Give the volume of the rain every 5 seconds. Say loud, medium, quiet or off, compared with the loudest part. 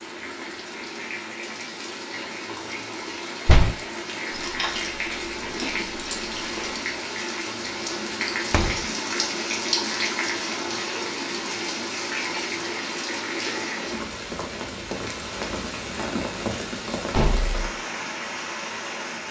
medium, loud, loud, loud.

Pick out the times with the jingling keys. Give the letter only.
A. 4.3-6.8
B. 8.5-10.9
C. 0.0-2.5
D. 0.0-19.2
A.